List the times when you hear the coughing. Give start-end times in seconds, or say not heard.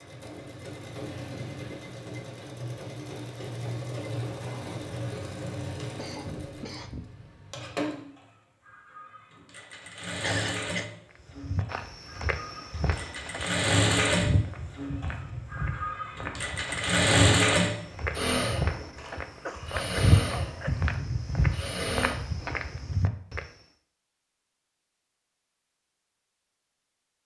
6.0-7.2, 10.2-10.8, 18.9-20.9.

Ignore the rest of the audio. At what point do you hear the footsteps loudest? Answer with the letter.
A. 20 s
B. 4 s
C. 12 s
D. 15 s
A.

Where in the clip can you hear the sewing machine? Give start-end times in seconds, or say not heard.
0.0-22.1.